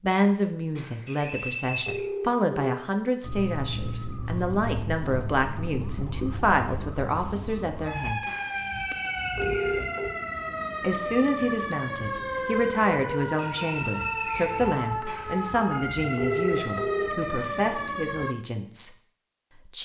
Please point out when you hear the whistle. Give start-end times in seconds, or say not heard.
1.1-2.0, 8.6-10.1, 13.3-14.8.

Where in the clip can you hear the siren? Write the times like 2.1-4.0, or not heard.
3.2-18.4.